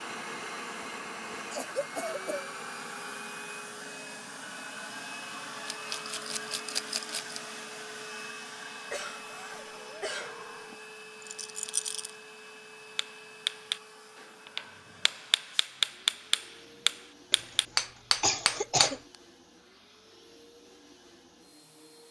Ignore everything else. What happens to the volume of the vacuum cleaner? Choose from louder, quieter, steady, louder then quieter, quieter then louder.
quieter.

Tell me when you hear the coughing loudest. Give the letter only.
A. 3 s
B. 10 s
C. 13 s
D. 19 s
D.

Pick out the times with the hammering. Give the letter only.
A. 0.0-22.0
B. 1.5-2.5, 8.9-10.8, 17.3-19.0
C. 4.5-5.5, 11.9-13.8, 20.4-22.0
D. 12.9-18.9
D.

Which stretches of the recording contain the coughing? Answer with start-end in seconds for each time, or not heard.
1.5-2.5, 8.9-10.8, 17.3-19.0.